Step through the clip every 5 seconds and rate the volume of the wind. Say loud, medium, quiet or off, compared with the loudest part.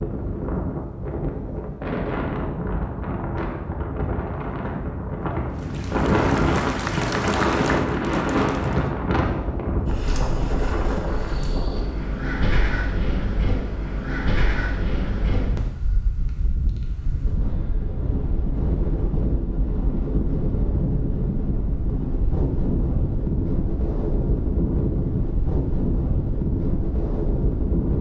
medium, loud, medium, medium, loud, loud.